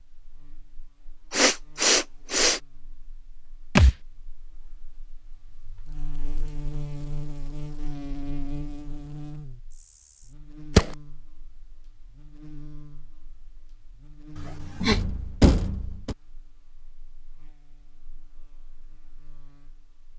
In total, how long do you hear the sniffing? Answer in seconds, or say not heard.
2 s.